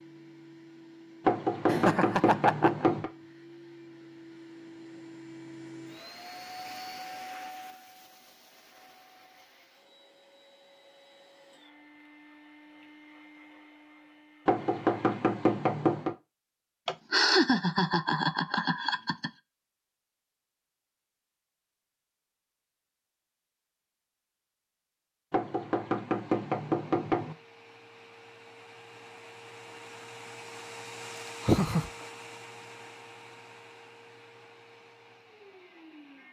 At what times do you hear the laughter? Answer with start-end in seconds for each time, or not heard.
1.6-2.9, 16.9-19.3, 31.4-31.9.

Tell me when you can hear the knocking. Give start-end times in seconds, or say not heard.
1.2-3.1, 14.4-16.1, 25.3-27.4.